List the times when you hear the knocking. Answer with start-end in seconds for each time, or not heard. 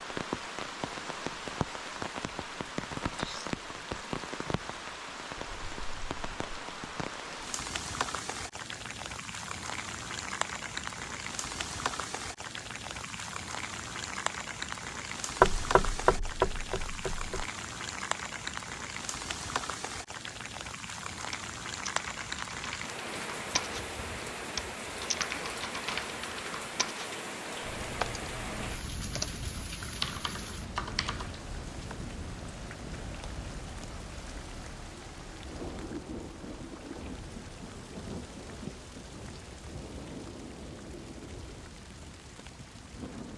15.4-17.4.